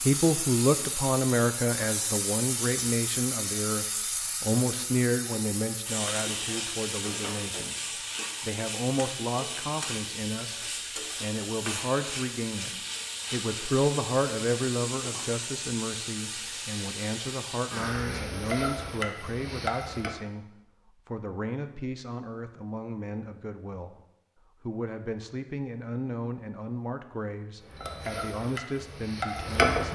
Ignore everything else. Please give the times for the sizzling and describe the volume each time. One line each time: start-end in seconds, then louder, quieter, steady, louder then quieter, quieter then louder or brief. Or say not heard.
0.0-20.1 steady
27.6-29.9 brief.